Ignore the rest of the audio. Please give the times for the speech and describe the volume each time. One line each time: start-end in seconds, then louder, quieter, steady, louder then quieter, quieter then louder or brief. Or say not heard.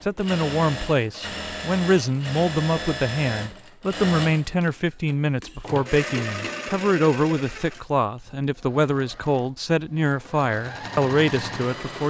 0.0-12.0 steady.